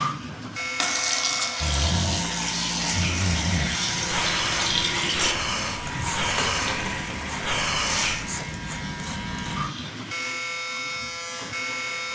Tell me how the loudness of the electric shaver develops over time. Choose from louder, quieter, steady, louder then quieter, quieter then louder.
steady.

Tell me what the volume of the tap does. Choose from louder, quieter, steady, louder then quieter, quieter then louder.
quieter.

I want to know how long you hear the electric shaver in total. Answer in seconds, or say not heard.
12 s.